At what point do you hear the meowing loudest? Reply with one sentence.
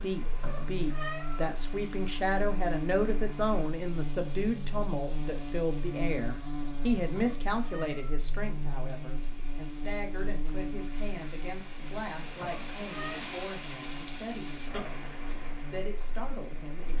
The volume of the meowing peaks at 1 second.